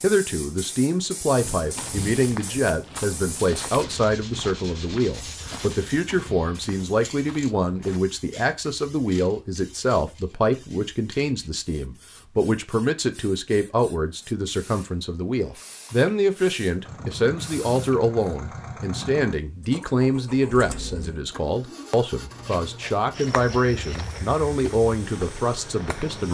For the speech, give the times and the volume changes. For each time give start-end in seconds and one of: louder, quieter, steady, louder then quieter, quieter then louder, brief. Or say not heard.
0.0-26.3 steady.